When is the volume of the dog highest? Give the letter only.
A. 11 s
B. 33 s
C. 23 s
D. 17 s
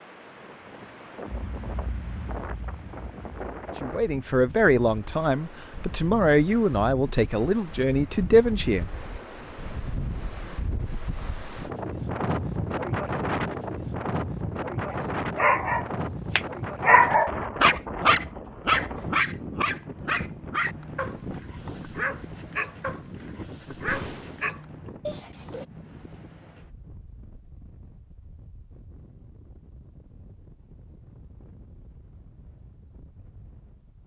D.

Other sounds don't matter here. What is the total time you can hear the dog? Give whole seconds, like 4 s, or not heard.
11 s.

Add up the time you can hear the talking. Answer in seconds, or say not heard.
5 s.